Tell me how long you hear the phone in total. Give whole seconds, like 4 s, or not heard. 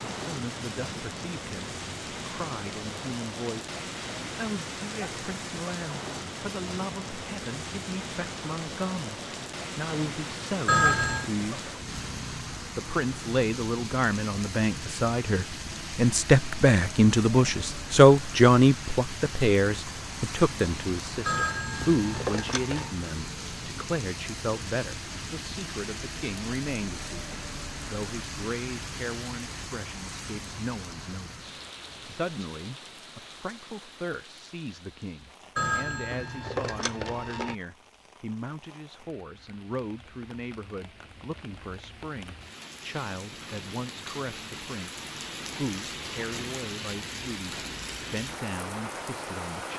4 s.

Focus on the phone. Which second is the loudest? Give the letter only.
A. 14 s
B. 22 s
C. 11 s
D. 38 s
C.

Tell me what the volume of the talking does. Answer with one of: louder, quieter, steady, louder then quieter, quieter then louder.
louder then quieter.